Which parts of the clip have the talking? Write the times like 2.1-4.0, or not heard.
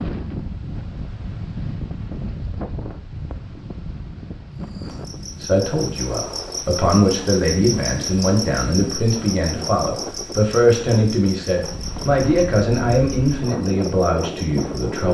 5.4-15.0.